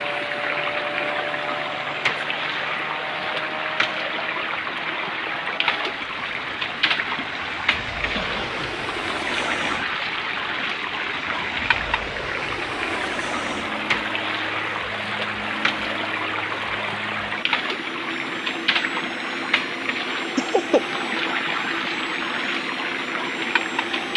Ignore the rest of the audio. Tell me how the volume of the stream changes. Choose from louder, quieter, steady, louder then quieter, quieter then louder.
steady.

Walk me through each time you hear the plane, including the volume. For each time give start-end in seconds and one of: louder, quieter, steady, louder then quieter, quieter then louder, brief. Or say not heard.
0.0-24.1 steady.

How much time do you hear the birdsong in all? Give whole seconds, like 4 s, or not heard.
not heard.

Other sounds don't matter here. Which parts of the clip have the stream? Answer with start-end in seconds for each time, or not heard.
0.0-24.1.